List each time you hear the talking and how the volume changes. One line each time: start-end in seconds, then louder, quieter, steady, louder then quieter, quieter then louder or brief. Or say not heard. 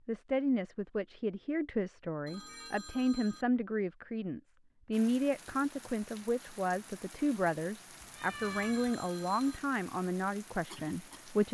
0.1-11.4 steady.